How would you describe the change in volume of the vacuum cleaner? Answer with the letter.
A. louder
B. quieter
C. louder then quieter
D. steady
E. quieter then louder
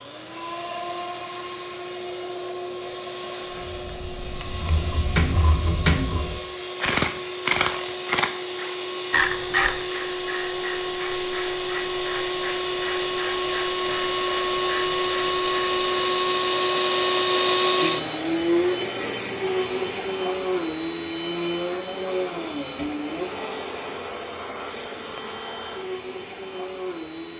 C.